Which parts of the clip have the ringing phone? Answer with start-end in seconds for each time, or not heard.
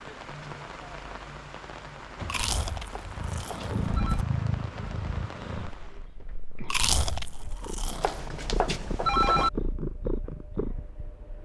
2.9-4.2, 8.0-9.5.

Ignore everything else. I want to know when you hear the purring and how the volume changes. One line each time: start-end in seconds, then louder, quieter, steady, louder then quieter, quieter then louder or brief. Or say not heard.
3.1-11.4 quieter then louder.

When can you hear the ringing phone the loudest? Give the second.
9 s.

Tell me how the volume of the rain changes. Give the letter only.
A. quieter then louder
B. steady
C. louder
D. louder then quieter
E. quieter
B.